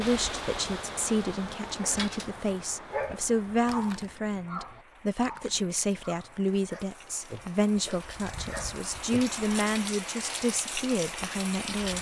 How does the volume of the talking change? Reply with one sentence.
The volume of the talking stays about the same.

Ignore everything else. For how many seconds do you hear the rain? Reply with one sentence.
The rain can be heard for 12 seconds in total.